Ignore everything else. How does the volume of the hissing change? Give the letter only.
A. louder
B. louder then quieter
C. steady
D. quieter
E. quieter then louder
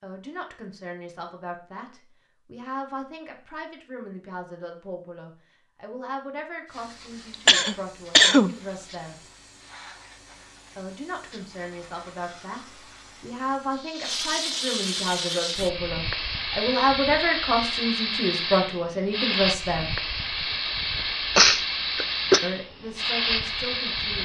A.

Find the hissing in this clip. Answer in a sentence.
You can hear the hissing from 6.7 to 24.2 s.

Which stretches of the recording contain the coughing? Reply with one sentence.
You can hear the coughing from 7.3 to 8.6 s and from 21.4 to 22.4 s.